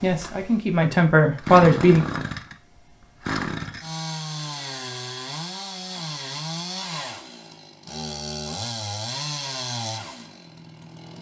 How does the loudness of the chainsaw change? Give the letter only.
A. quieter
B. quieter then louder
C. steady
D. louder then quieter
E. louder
C.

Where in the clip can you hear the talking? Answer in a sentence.
The talking can be heard from 0.0 to 2.0 s.